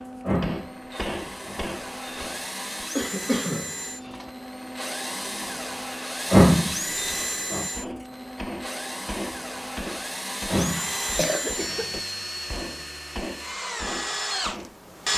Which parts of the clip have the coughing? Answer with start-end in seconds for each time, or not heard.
3.0-4.3, 10.5-12.0.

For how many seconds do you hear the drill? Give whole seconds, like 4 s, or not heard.
15 s.